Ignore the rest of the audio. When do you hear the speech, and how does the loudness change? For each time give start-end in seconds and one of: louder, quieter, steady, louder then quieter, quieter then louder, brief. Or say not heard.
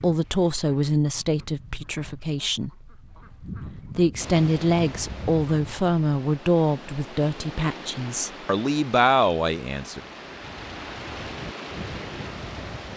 0.0-2.9 brief
3.8-10.0 quieter then louder.